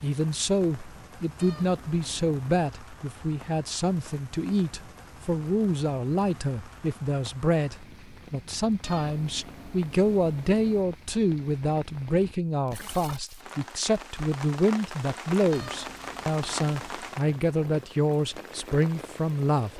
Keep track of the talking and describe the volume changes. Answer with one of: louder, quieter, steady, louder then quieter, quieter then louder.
steady.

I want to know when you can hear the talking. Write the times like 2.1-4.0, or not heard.
0.0-19.7.